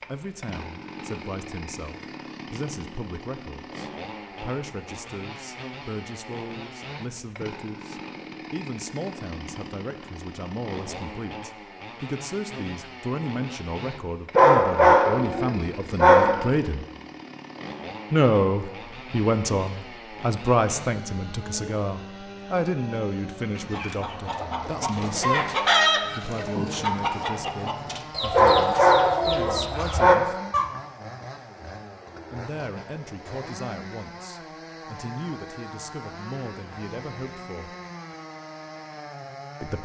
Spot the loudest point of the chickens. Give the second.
26 s.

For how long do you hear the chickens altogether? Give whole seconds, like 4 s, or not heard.
7 s.